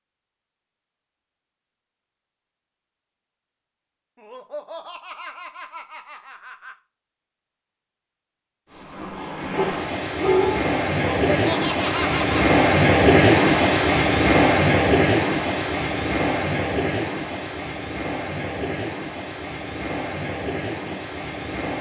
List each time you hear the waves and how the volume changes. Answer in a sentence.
The waves can be heard from 8.7 to 21.7 s, getting louder then quieter.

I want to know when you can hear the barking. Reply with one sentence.
You can hear the barking from 9.6 to 10.7 s.